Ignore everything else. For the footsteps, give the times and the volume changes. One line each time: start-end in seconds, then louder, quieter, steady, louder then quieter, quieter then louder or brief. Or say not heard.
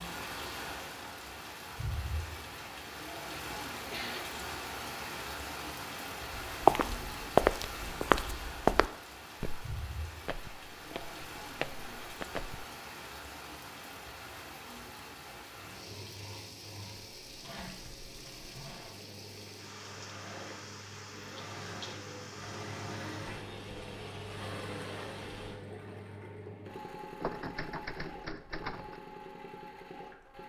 6.5-12.7 quieter then louder.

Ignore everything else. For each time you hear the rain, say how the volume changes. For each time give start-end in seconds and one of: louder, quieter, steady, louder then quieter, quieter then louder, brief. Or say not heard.
0.0-25.6 quieter.